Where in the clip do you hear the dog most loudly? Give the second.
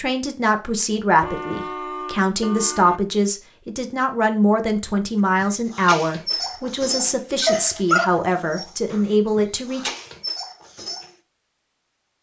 8 s.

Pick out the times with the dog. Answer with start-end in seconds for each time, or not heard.
5.4-11.1.